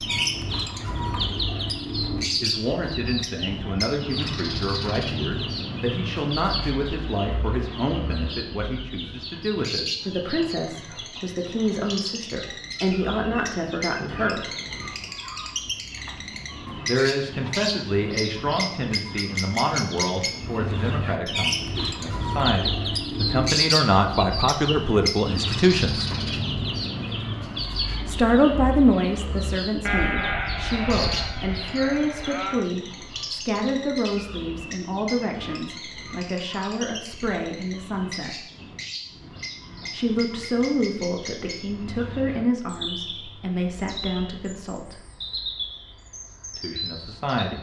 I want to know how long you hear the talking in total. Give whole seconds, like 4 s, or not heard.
38 s.